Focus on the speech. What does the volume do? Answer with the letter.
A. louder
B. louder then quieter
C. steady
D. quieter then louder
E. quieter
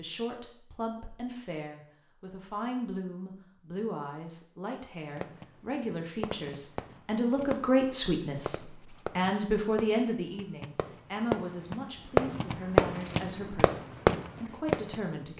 B.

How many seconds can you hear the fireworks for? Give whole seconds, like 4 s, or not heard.
10 s.